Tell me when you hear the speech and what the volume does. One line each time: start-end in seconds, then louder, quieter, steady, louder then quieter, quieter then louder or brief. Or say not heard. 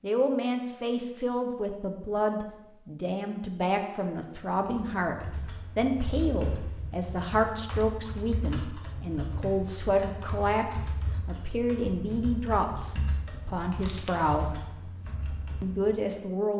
0.0-14.6 steady
15.6-16.5 brief.